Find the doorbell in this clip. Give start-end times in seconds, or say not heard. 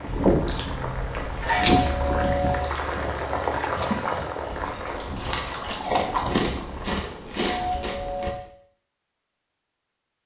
1.6-2.8, 7.5-8.4.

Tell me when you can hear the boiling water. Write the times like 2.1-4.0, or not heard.
0.0-7.0.